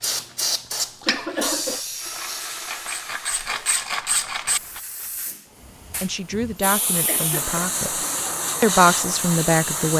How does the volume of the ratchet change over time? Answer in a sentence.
The loudness of the ratchet goes down, then up.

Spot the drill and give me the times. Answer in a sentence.
You can hear the drill from 2.0 to 3.9 s.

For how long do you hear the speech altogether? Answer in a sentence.
The speech can be heard for 3 seconds in total.